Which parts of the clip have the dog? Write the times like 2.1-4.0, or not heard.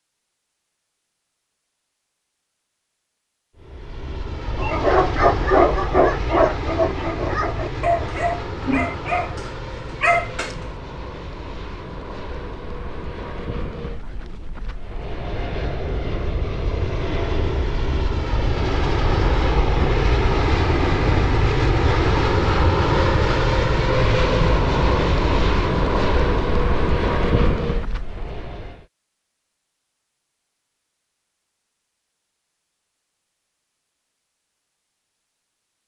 4.5-10.6.